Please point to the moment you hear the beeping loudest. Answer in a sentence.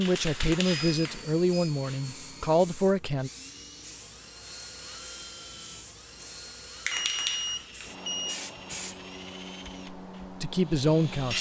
The volume of the beeping peaks at 7 seconds.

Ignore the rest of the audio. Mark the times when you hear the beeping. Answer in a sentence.
You can hear the beeping from 0.7 to 1.7 s and from 6.9 to 8.4 s.